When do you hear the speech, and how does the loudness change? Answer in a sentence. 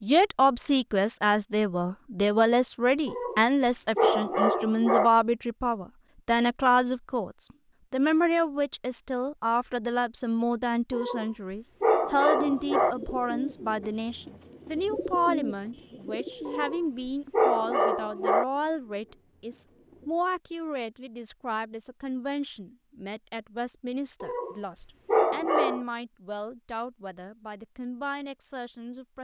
The speech can be heard from 0.0 to 29.1 s, getting quieter.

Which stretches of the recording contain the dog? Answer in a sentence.
You can hear the dog from 3.0 to 5.1 s, from 10.9 to 12.9 s, from 16.4 to 18.4 s and from 24.2 to 25.9 s.